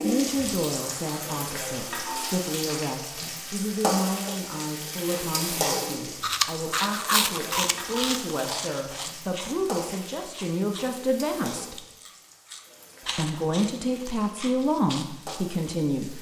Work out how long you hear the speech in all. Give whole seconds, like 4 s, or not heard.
15 s.